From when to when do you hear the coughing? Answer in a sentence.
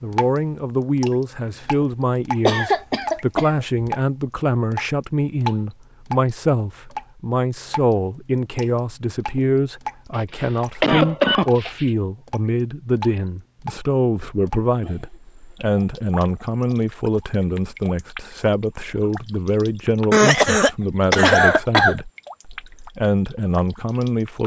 You can hear the coughing from 2.5 to 3.6 s, from 10.4 to 11.9 s and from 20.1 to 22.0 s.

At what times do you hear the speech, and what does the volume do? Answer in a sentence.
You can hear the speech from 0.0 to 24.4 s, at a steady volume.